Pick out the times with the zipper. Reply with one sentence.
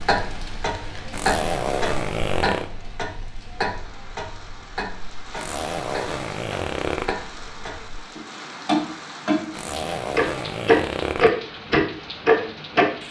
The zipper can be heard from 1.1 to 2.7 s, from 5.3 to 7.2 s and from 9.5 to 11.3 s.